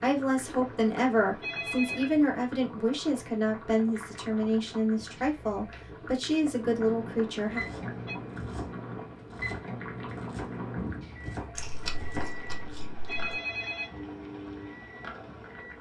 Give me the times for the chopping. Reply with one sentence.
The chopping can be heard from 7.5 to 10.6 s and from 11.2 to 12.3 s.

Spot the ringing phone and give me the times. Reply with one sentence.
You can hear the ringing phone from 0.5 to 2.2 s, from 7.1 to 8.2 s and from 12.2 to 13.9 s.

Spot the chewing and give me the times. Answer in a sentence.
The chewing can be heard from 11.6 to 13.3 s.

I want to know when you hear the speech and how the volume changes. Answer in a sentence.
The speech can be heard from 0.0 to 7.6 s, at a steady volume.